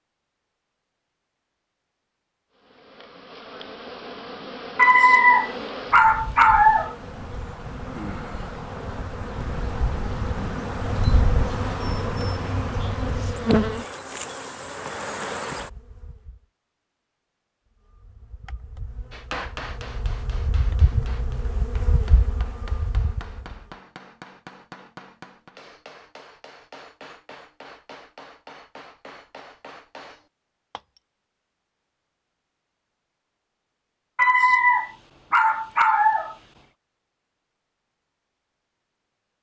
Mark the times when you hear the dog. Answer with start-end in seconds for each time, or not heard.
4.8-7.0, 34.1-36.4.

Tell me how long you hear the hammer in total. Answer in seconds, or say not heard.
12 s.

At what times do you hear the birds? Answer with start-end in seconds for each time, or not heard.
not heard.